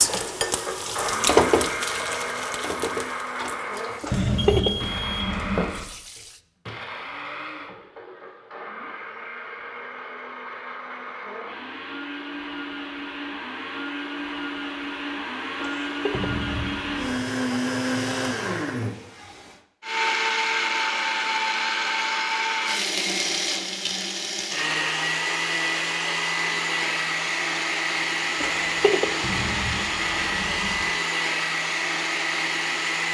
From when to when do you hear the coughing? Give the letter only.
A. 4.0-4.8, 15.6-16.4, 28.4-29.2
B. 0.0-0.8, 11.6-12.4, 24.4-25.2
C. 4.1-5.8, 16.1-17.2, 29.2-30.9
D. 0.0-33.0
A.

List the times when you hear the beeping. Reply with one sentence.
You can hear the beeping from 4.1 to 5.8 s, from 16.1 to 17.2 s and from 29.2 to 30.9 s.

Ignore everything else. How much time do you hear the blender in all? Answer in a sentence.
The blender can be heard for 33 seconds in total.